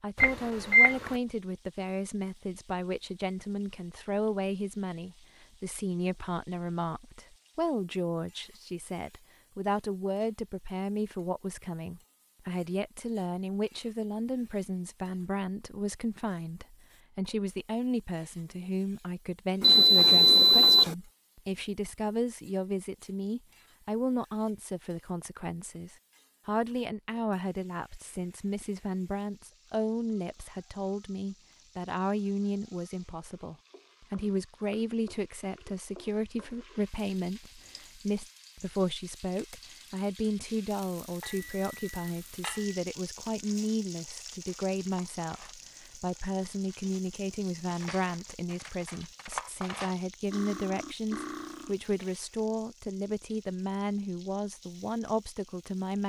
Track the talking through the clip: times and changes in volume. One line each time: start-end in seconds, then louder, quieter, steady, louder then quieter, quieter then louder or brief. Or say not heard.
0.0-56.0 steady.